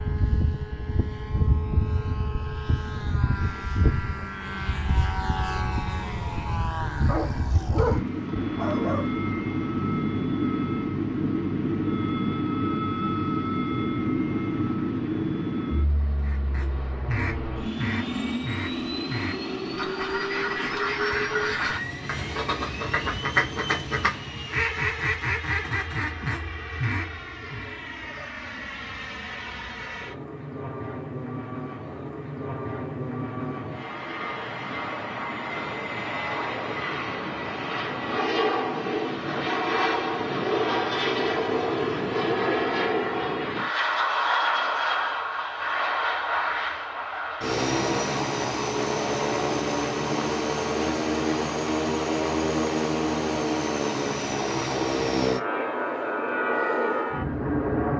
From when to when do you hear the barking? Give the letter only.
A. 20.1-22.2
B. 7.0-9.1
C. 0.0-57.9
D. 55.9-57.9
B.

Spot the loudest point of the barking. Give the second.
8 s.